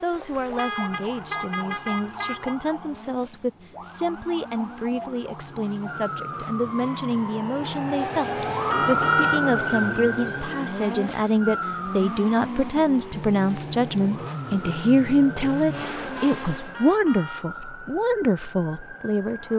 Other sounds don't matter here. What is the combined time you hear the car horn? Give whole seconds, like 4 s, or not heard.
4 s.